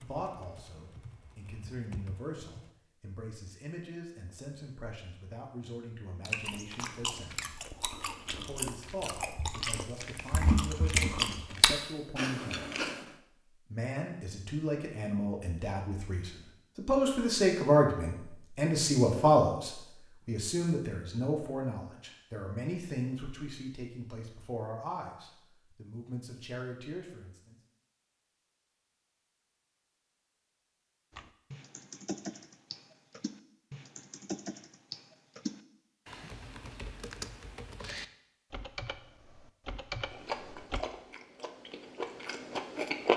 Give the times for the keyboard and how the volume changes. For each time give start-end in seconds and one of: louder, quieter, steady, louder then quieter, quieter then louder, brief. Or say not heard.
0.0-2.7 brief
31.1-40.8 steady.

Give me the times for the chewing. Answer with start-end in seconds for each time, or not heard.
6.2-13.1, 40.1-43.1.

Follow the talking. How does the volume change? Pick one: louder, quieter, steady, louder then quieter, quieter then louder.
louder then quieter.